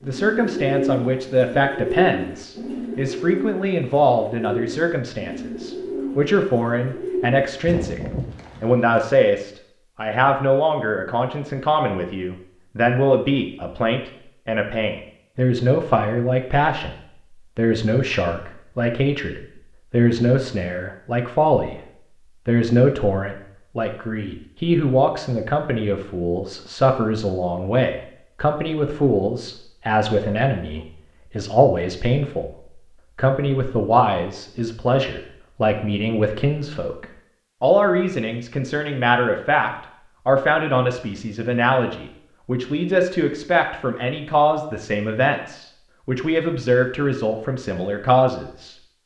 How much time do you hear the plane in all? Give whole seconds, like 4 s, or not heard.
not heard.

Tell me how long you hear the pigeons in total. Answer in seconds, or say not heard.
9 s.